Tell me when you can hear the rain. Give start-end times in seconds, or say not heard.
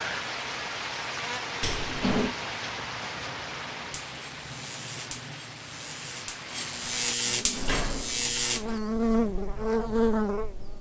0.0-7.2.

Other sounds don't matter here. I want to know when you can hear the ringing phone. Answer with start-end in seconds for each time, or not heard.
not heard.